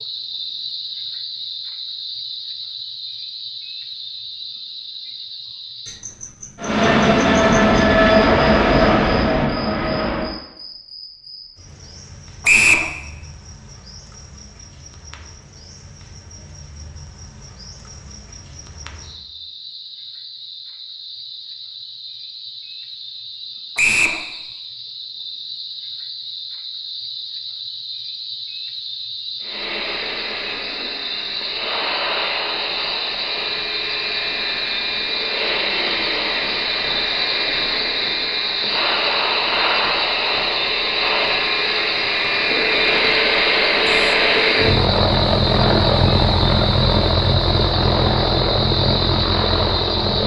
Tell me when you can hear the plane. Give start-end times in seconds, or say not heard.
6.6-10.3, 29.4-50.2.